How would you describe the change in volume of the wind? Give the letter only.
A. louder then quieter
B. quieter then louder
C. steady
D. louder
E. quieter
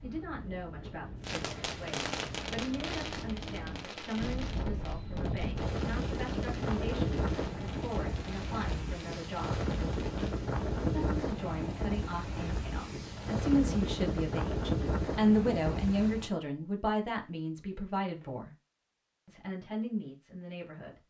D.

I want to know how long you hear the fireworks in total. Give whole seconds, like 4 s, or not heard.
9 s.